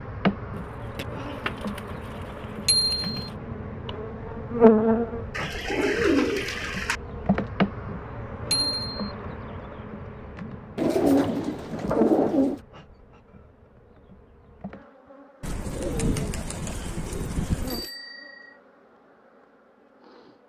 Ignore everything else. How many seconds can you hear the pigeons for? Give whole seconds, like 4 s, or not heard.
8 s.